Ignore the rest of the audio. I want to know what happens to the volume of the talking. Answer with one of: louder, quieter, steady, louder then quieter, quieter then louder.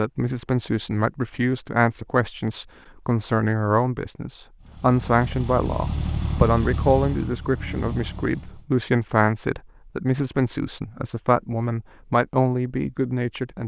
steady.